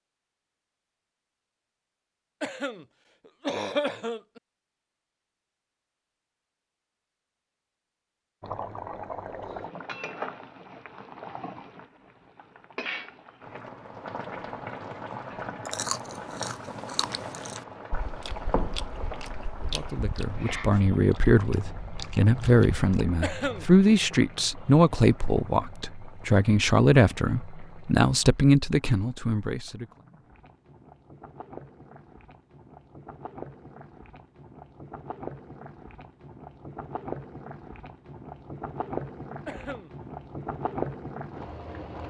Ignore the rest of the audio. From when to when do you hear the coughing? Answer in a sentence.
The coughing can be heard from 2.4 to 4.4 s, from 23.2 to 23.6 s and from 39.5 to 39.9 s.